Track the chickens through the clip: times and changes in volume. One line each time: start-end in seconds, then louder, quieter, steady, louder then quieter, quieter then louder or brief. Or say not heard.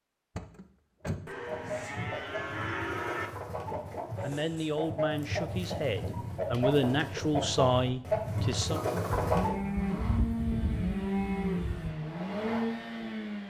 1.4-9.6 louder.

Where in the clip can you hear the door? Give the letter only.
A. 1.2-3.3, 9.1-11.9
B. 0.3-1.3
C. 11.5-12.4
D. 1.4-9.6
B.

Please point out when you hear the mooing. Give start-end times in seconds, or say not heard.
1.2-3.3, 9.1-11.9.